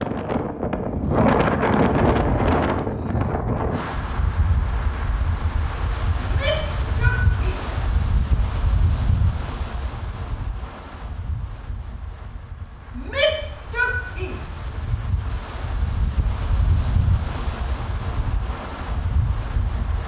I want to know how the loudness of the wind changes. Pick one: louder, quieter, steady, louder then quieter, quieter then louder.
quieter then louder.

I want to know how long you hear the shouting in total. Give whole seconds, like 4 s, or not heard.
3 s.